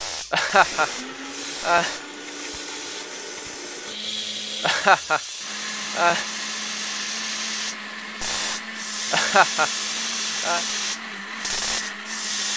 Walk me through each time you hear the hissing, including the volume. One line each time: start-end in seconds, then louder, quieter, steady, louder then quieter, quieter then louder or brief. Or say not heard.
0.0-12.5 louder.